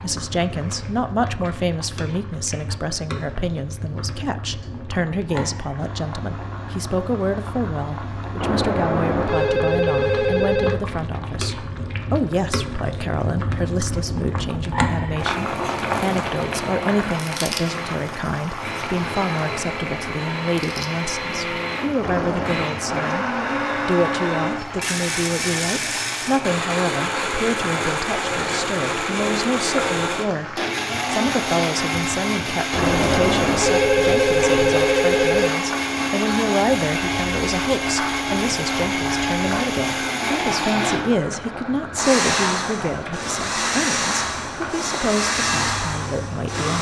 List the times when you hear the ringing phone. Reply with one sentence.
You can hear the ringing phone from 8.4 to 10.8 s, from 22.0 to 22.6 s and from 32.7 to 35.5 s.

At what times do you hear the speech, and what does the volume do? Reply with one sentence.
The speech can be heard from 0.0 to 46.7 s, at a steady volume.